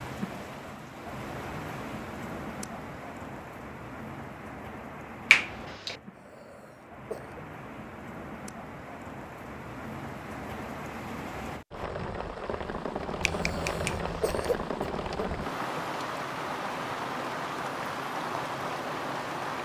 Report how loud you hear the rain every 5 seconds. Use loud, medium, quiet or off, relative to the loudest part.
medium, medium, loud, loud.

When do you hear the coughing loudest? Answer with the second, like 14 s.
14 s.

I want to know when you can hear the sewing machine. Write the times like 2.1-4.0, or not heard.
not heard.